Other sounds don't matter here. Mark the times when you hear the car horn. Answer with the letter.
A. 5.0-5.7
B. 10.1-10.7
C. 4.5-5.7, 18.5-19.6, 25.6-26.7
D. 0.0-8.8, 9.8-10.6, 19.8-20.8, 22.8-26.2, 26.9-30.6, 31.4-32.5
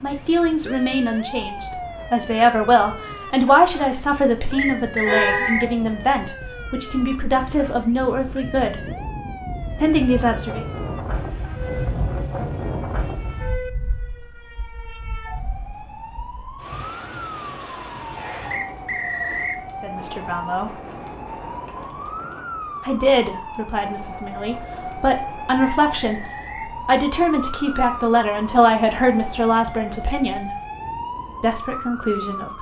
A.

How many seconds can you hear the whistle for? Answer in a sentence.
You can hear the whistle for 3 seconds altogether.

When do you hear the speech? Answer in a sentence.
The speech can be heard from 0.0 to 8.8 s, from 9.8 to 10.6 s, from 19.8 to 20.8 s, from 22.8 to 26.2 s, from 26.9 to 30.6 s and from 31.4 to 32.5 s.